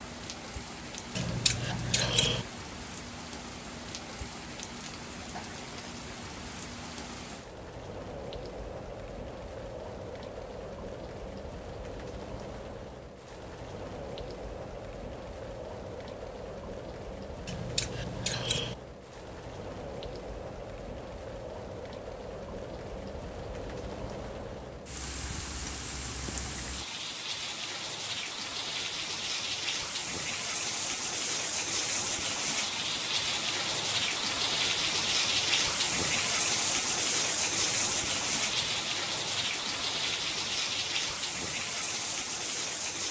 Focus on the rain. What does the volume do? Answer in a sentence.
The volume of the rain goes up.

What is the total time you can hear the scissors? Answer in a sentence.
You can hear the scissors for 4 seconds altogether.